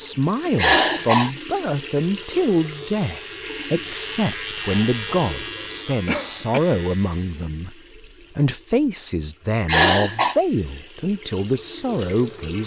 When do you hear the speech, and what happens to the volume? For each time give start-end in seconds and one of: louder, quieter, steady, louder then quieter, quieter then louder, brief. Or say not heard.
0.0-12.6 steady.